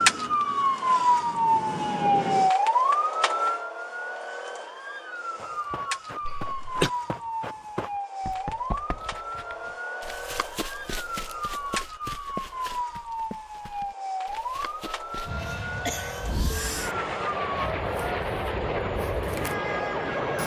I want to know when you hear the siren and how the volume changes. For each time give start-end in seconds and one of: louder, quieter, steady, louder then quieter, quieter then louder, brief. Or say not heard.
0.0-20.4 quieter.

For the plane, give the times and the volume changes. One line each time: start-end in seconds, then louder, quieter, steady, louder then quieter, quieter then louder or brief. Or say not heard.
0.0-2.5 brief
15.2-20.4 louder.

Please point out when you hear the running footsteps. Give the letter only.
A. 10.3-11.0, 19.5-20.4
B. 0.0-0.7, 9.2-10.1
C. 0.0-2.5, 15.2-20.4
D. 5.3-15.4
D.